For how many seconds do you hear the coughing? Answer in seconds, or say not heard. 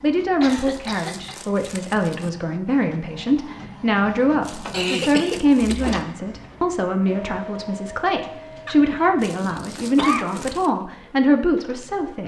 4 s.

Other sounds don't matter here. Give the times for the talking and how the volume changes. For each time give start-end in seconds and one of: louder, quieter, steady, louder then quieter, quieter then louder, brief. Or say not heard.
0.0-12.2 steady.